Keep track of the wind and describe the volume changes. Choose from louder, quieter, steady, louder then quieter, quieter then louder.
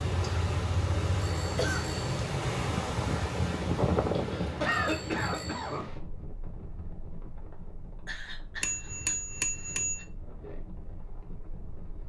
quieter.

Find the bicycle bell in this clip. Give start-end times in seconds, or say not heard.
1.2-2.1, 4.7-5.8, 8.6-10.1.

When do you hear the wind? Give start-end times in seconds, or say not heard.
0.0-12.0.